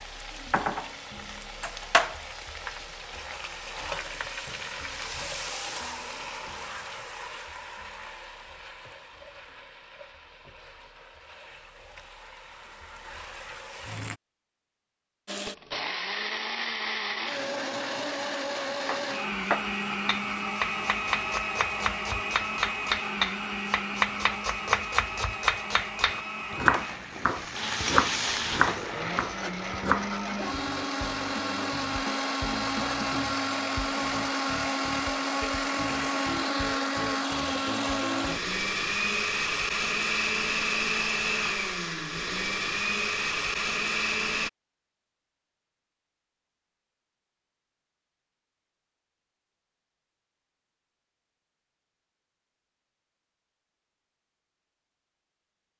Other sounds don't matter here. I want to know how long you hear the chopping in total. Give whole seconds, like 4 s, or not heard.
11 s.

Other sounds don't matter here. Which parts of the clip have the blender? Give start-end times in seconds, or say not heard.
15.2-44.5.